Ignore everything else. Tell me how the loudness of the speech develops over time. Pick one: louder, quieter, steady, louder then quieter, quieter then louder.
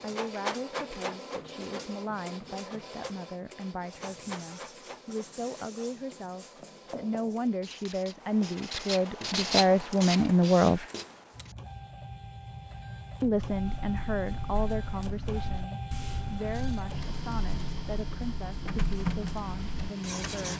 louder then quieter.